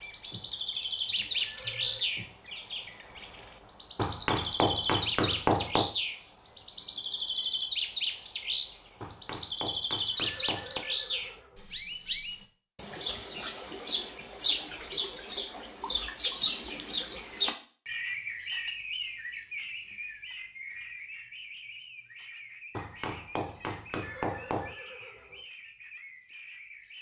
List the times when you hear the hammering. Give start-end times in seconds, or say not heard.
4.0-6.0, 9.0-10.8, 22.8-24.8.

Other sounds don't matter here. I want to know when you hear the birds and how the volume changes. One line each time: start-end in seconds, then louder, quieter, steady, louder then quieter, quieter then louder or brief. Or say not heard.
0.0-26.9 quieter.